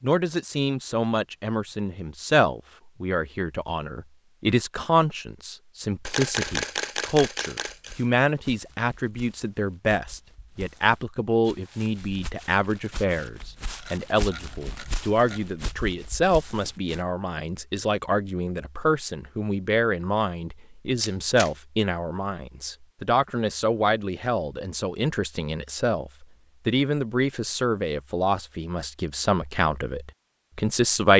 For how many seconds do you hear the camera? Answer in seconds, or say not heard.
4 s.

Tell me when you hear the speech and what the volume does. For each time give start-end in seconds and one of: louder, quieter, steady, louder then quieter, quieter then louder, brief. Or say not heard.
0.0-31.1 steady.